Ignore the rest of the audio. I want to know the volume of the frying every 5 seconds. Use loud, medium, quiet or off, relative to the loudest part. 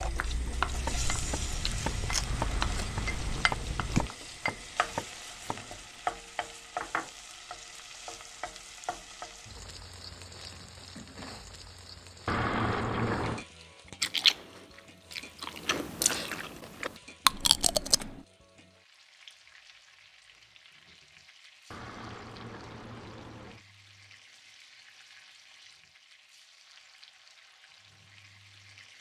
loud, loud, medium, quiet, quiet, quiet.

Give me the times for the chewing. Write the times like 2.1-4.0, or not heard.
0.0-4.1, 14.0-18.2.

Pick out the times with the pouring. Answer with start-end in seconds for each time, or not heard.
2.2-3.5, 12.2-13.4, 21.7-23.6.